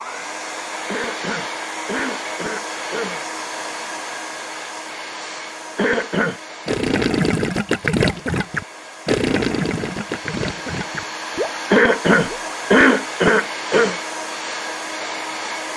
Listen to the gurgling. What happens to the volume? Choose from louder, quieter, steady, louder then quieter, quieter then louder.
quieter.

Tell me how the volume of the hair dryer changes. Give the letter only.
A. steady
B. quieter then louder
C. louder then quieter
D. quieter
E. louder
B.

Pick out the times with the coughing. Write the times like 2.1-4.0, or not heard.
0.8-3.2, 5.8-6.4, 11.7-14.0.